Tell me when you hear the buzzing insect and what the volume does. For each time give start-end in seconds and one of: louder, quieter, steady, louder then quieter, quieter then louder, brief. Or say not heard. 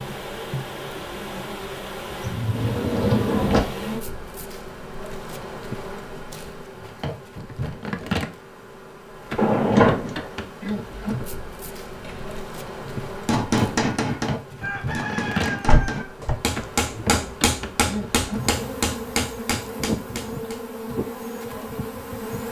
0.0-22.4 steady.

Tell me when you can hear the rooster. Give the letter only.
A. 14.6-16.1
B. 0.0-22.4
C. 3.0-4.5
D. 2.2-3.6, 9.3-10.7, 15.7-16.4
A.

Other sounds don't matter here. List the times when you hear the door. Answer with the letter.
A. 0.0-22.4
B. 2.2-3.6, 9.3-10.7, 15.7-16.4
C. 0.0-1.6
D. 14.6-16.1
B.